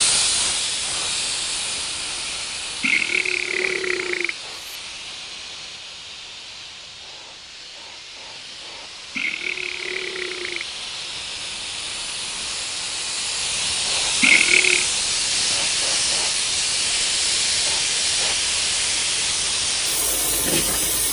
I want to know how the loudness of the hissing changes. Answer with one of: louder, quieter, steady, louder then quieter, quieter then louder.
quieter then louder.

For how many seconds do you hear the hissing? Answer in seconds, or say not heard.
21 s.